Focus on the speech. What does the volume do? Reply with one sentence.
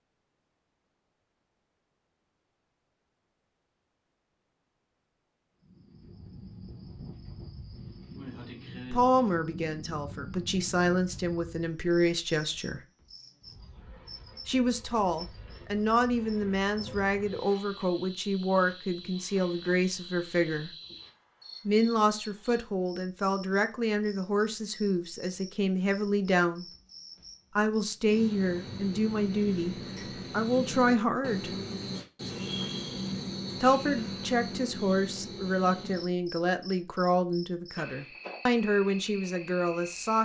The loudness of the speech stays about the same.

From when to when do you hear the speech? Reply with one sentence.
You can hear the speech from 8.9 to 12.8 s, from 14.4 to 20.7 s, from 21.6 to 26.6 s, from 27.6 to 31.5 s and from 33.6 to 40.2 s.